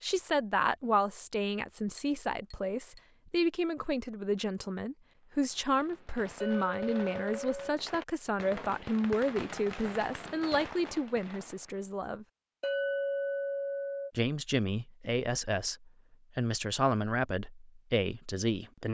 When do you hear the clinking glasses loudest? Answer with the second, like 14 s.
13 s.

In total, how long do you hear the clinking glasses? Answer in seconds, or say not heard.
4 s.